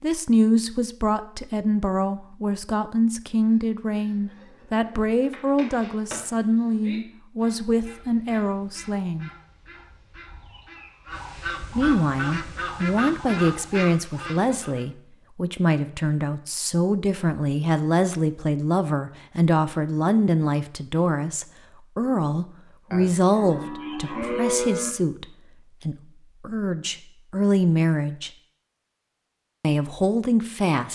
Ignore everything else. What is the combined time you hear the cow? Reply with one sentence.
The cow can be heard for 2 seconds in total.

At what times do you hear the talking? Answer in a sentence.
The talking can be heard from 0.0 to 9.3 s, from 11.8 to 25.2 s, from 25.9 to 28.3 s and from 29.6 to 30.8 s.